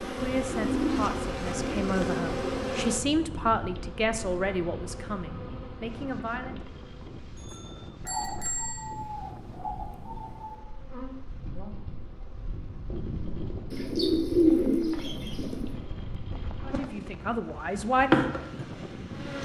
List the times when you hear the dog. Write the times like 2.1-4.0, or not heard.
not heard.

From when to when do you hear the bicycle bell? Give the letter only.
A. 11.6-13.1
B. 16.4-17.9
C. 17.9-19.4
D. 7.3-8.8
D.